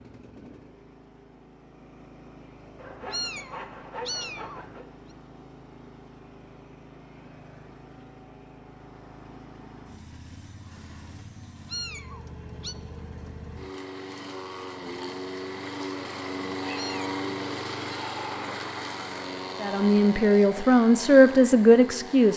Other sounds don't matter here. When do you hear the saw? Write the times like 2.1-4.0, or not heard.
2.8-4.8.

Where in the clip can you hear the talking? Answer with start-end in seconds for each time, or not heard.
19.6-22.3.